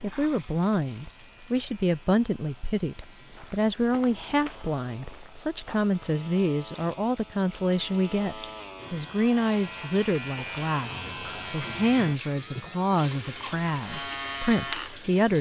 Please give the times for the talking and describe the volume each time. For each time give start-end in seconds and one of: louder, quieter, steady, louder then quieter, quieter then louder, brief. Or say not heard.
0.0-15.3 steady.